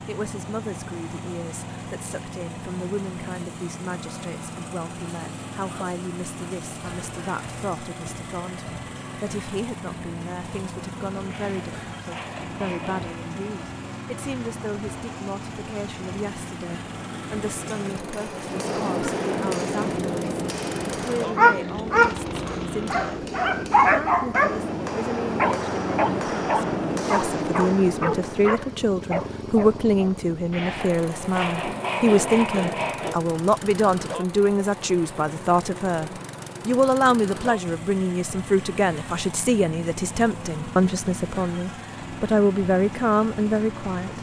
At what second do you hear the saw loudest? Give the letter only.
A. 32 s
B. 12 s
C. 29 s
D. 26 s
A.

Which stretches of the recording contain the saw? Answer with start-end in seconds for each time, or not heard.
11.2-13.2, 30.5-33.2.